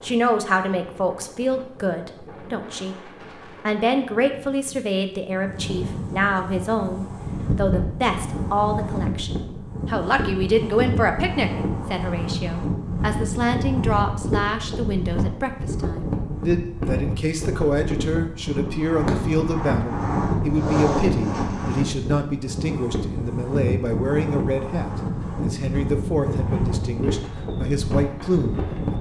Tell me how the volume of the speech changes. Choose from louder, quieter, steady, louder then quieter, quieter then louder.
steady.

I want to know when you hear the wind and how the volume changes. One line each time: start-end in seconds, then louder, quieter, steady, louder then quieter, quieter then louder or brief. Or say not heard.
0.0-28.9 louder.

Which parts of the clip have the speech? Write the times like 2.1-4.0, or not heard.
0.0-28.9.